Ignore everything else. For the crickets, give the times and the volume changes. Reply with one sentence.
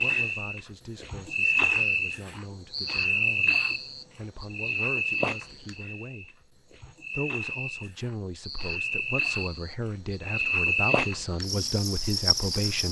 The crickets can be heard from 0.0 to 12.8 s, getting quieter then louder.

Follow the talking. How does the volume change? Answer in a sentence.
The loudness of the talking goes up.